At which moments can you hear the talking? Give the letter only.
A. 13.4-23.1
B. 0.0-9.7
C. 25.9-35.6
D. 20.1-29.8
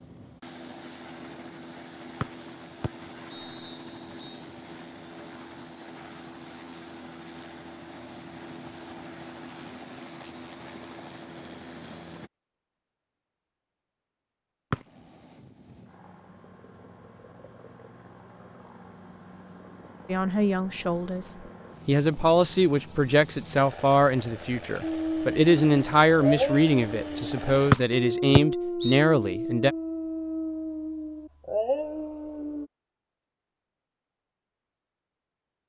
D.